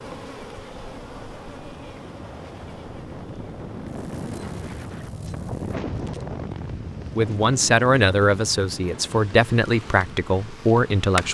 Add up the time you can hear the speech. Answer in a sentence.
The speech can be heard for 4 seconds in total.